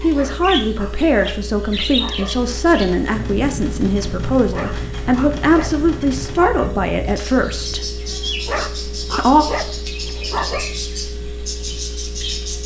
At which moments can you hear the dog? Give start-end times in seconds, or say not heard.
0.1-2.3, 4.5-6.7, 8.4-10.7.